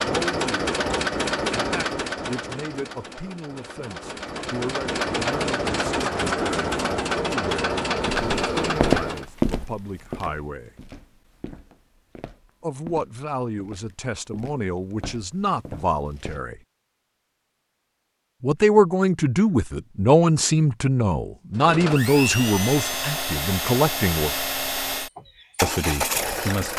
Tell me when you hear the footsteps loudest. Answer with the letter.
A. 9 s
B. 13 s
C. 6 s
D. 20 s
A.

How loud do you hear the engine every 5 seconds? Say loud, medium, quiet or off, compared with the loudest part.
loud, loud, off, off, loud, loud.